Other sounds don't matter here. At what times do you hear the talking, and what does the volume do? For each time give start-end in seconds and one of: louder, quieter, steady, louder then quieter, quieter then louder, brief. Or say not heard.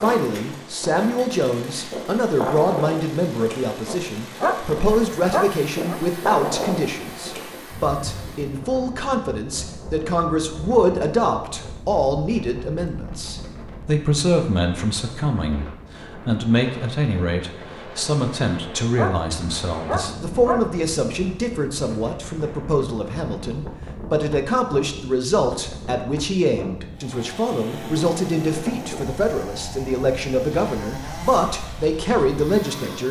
0.0-33.0 steady.